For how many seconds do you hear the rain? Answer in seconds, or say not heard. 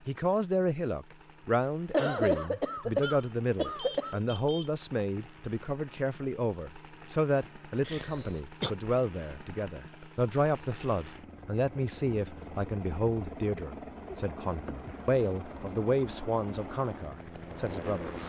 not heard.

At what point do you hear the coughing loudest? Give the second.
2 s.